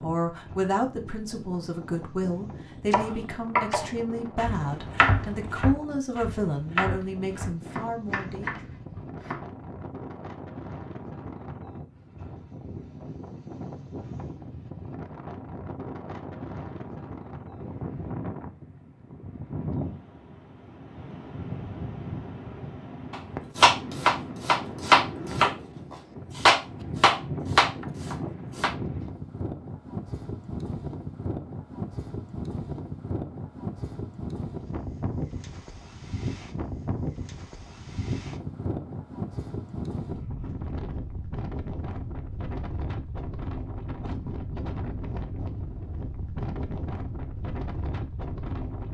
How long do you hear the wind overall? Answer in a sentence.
You can hear the wind for 49 seconds altogether.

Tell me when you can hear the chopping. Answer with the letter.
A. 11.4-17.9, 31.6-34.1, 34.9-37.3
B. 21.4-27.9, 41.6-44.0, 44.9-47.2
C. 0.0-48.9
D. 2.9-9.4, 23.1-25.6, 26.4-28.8
D.